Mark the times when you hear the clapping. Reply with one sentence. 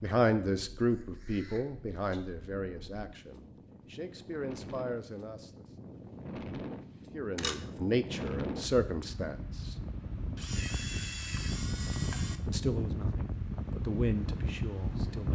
You can't hear the clapping here.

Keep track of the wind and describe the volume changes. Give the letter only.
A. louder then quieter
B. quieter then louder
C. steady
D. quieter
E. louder
E.